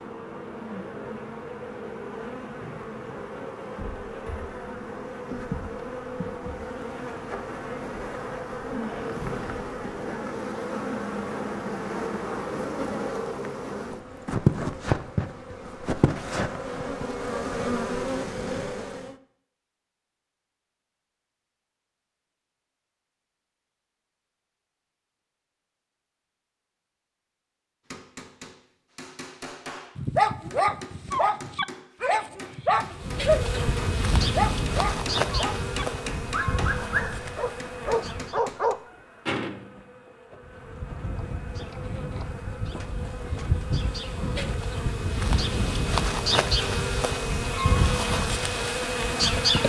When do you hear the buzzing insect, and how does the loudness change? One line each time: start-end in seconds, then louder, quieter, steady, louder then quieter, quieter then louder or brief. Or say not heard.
0.0-19.1 louder
33.0-49.6 quieter then louder.